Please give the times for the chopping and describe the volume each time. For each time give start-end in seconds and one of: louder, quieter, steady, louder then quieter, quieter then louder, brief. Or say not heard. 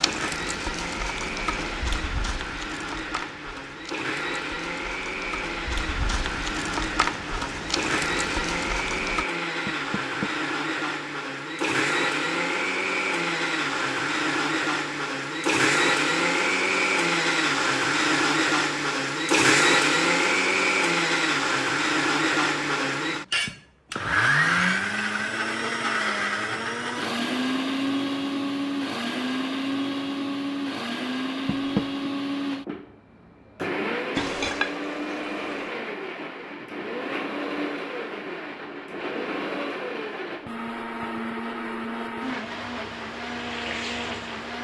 not heard.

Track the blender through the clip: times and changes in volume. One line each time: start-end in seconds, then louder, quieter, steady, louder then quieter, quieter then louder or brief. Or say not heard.
0.0-44.5 louder then quieter.